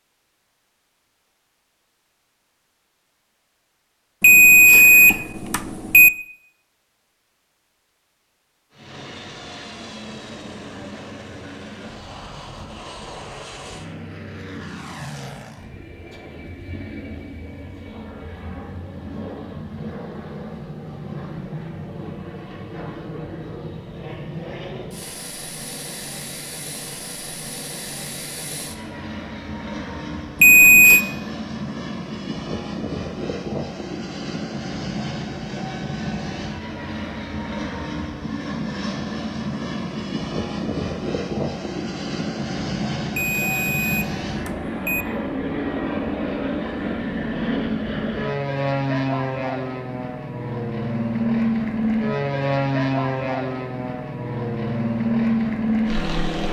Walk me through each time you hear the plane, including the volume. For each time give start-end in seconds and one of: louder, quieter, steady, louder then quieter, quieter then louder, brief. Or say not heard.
8.7-56.4 louder.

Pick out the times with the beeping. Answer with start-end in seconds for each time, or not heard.
4.2-6.1, 30.4-31.1, 43.1-45.0.